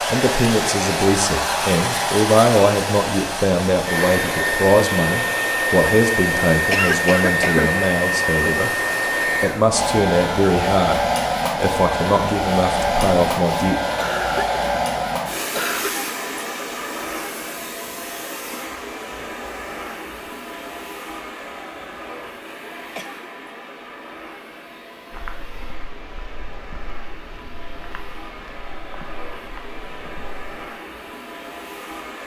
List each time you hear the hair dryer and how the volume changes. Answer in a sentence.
The hair dryer can be heard from 0.0 to 32.2 s, getting quieter.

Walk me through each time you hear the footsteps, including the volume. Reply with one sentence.
You can hear the footsteps from 25.1 to 30.7 s, at a steady volume.